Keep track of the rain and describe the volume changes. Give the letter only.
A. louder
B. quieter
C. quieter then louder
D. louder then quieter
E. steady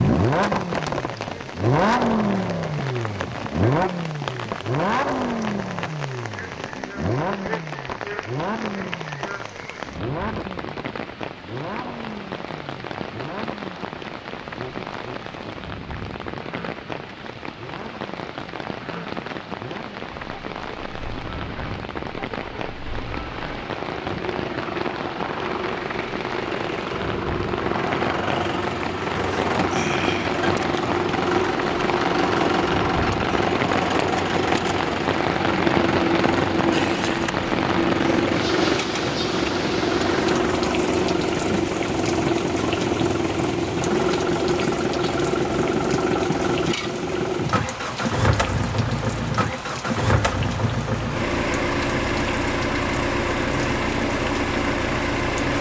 D.